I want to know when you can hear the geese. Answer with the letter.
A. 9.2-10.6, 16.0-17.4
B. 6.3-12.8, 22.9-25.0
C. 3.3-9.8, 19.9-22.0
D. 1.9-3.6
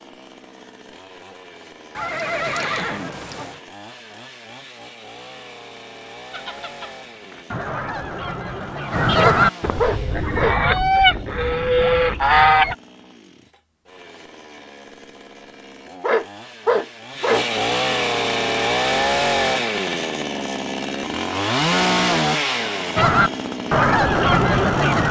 B.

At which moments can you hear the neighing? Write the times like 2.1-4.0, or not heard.
1.9-3.6.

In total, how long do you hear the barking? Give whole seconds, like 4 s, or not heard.
3 s.